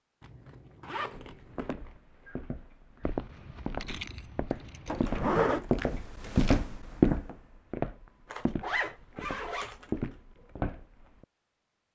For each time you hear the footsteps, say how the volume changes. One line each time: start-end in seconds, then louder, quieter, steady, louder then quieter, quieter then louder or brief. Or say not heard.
1.1-11.2 louder then quieter.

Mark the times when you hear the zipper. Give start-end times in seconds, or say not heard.
0.2-1.8, 4.8-5.7, 8.3-9.9.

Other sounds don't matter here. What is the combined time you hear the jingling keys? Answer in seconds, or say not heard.
2 s.